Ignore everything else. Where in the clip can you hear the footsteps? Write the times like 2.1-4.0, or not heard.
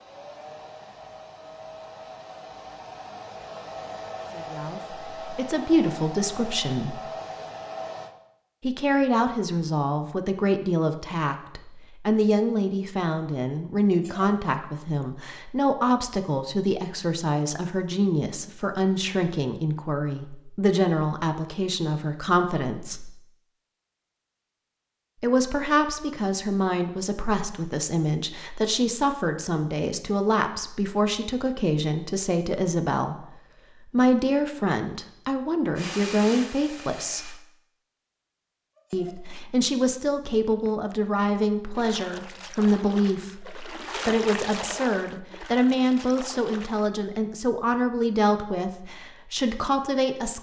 not heard.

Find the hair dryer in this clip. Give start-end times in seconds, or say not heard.
0.0-8.2, 35.8-37.4.